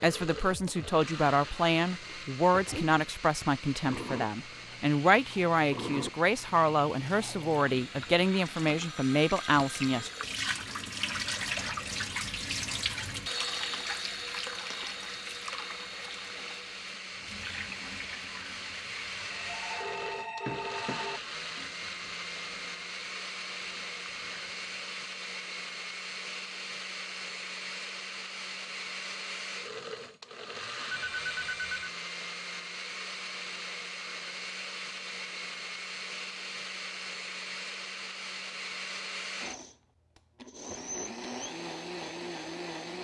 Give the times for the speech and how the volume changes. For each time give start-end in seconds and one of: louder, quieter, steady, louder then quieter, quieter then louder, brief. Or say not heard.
0.0-10.1 steady.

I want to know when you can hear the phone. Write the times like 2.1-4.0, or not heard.
8.9-10.1, 19.2-21.2, 30.9-31.9.